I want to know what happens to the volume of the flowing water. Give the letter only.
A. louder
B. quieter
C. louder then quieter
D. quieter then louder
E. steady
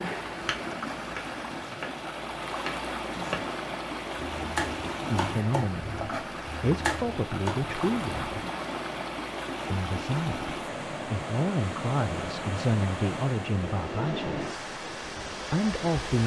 E.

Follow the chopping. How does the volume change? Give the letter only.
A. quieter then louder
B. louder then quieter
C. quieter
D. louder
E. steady
D.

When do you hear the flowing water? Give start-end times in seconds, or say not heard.
0.0-16.2.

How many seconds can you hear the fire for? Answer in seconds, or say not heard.
not heard.